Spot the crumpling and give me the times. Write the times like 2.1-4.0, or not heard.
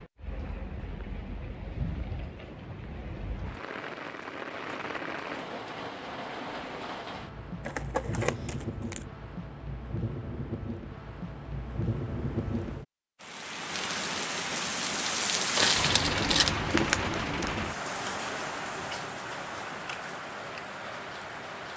7.6-9.1, 15.6-16.5.